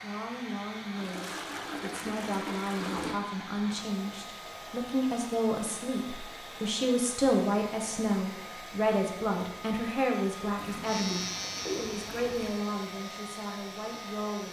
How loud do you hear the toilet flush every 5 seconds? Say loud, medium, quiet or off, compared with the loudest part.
loud, off, loud.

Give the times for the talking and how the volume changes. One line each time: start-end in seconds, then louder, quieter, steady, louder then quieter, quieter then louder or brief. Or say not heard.
0.0-14.4 louder then quieter.